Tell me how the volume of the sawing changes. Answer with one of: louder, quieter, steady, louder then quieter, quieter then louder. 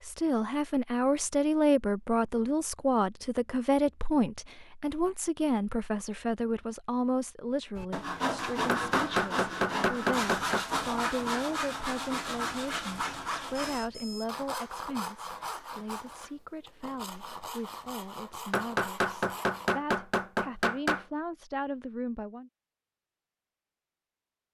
quieter.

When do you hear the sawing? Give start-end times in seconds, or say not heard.
7.8-19.7.